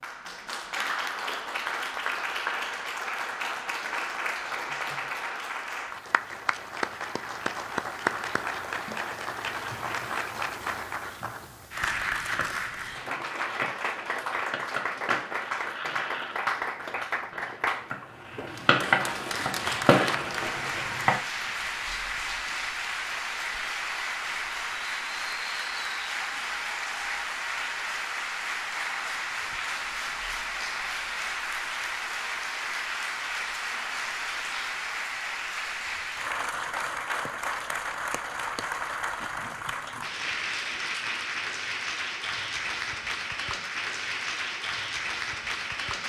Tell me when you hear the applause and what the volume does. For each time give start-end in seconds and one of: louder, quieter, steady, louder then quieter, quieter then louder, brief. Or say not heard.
0.0-46.0 steady.